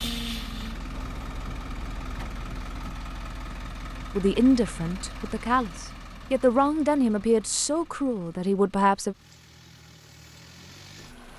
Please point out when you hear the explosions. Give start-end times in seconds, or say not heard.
0.9-2.9.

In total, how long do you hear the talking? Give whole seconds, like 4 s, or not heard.
5 s.